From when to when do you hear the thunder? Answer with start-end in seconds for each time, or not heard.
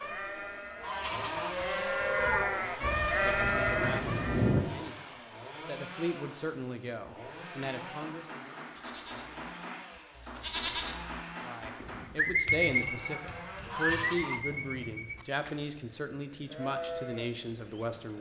2.8-4.6.